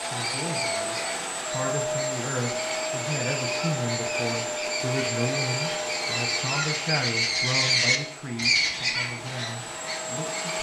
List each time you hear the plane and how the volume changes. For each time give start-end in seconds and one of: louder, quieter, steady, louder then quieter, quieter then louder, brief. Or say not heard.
0.0-10.5 quieter.